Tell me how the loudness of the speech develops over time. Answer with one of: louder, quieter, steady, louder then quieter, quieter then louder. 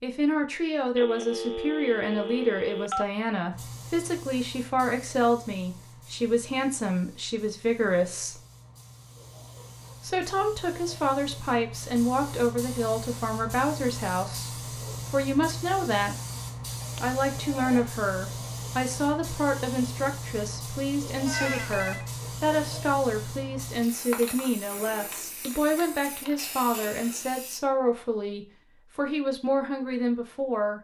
steady.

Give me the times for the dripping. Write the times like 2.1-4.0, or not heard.
not heard.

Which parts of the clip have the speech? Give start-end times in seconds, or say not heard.
0.0-8.4, 10.0-16.1, 17.0-30.7.